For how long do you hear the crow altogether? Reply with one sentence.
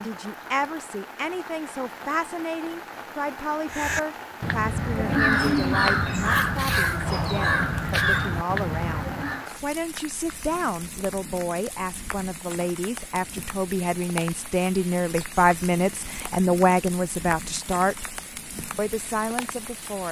You can hear the crow for 6 seconds altogether.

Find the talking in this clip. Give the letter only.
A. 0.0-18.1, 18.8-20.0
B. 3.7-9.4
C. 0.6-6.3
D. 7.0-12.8
A.